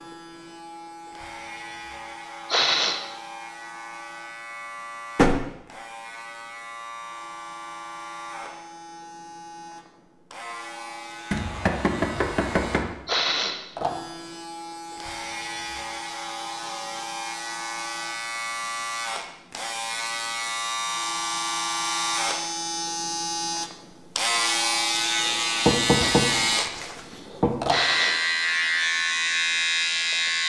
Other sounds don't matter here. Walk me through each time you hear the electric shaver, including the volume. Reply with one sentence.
The electric shaver can be heard from 0.0 to 30.4 s, getting louder.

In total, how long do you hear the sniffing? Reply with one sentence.
The sniffing can be heard for 2 seconds in total.